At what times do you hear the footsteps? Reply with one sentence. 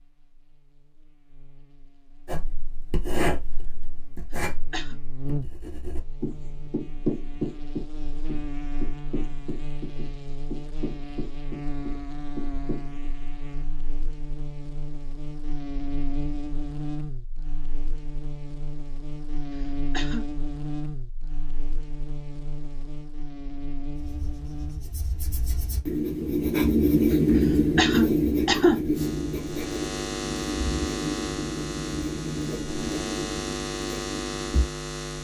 The footsteps can't be heard in this clip.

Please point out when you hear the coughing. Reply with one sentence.
The coughing can be heard from 4.3 to 5.0 s, from 19.6 to 20.2 s and from 27.8 to 28.8 s.